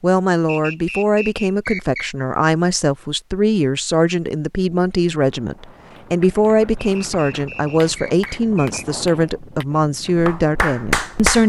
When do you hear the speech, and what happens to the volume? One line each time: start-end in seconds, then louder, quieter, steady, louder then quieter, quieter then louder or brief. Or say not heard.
0.0-11.4 steady.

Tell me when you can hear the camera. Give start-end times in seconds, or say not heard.
not heard.